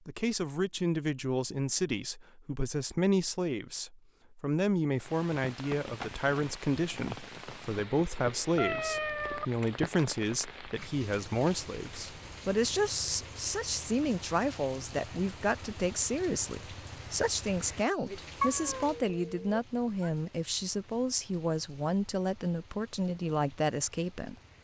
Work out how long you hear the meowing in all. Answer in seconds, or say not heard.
3 s.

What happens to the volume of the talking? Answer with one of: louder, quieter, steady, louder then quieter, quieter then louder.
steady.